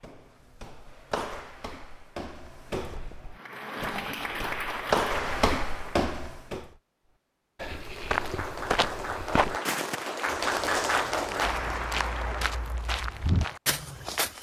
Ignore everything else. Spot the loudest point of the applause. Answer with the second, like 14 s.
11 s.